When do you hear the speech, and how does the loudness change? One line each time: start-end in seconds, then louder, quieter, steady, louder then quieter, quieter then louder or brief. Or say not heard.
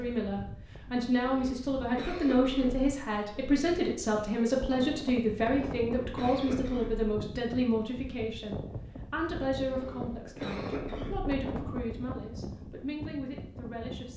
0.0-14.1 quieter.